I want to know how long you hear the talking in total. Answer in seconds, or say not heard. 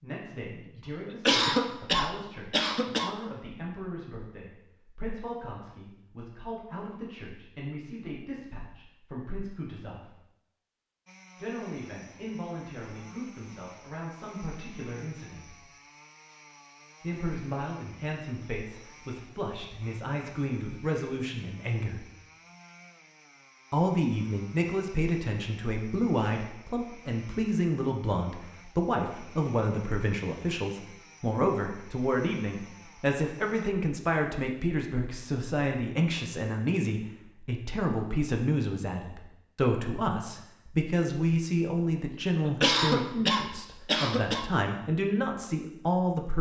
42 s.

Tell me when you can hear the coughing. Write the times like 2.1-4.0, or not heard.
1.1-3.1, 42.4-44.5.